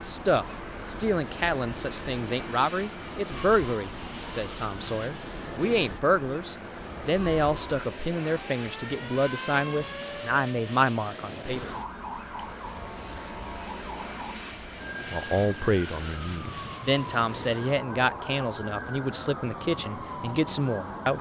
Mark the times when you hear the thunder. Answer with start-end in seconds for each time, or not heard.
not heard.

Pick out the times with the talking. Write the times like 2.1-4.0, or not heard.
0.0-11.7, 15.1-21.1.